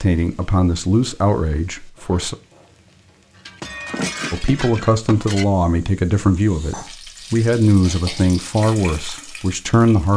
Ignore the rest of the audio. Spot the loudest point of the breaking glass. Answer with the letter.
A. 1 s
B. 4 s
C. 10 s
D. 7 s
B.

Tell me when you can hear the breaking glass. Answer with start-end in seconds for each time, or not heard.
3.5-5.5.